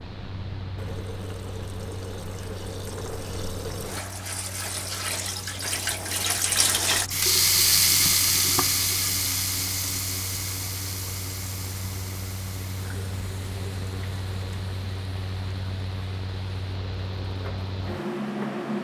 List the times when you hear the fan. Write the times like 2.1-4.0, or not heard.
0.0-18.7.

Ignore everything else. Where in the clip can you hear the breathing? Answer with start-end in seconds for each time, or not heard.
not heard.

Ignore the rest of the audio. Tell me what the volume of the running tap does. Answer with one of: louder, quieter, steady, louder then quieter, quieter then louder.
louder then quieter.